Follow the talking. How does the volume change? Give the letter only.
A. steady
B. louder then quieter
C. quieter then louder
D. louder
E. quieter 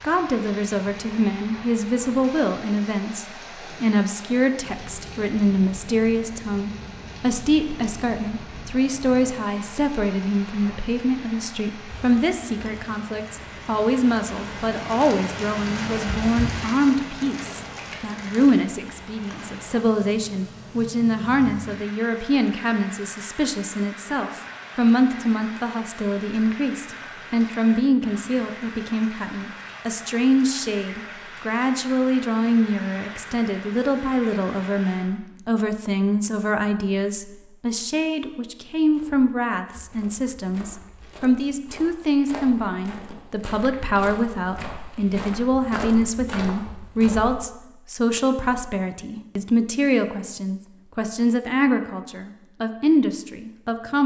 A.